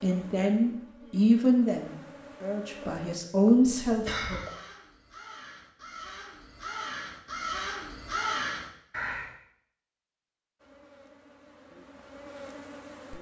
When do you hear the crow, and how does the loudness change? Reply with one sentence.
You can hear the crow from 3.5 to 9.3 s, getting louder.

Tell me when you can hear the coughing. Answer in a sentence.
You can hear the coughing from 2.8 to 4.6 s.